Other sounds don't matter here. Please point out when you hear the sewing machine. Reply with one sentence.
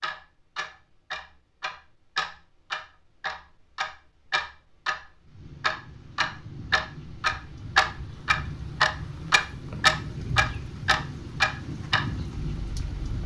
You can't hear the sewing machine here.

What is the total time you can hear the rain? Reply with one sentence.
You can hear the rain for 8 seconds altogether.